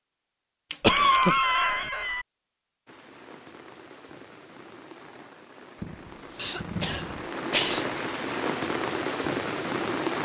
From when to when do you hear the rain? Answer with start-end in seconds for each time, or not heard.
2.9-10.2.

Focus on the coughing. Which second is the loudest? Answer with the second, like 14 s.
1 s.